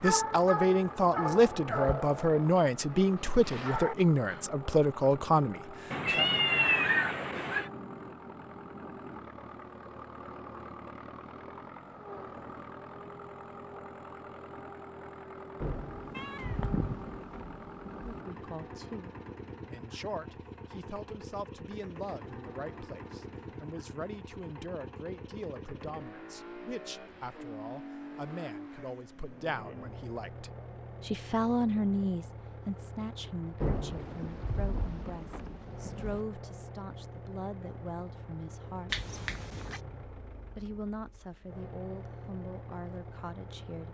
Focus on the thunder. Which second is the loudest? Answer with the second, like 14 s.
34 s.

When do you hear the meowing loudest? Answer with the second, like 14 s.
7 s.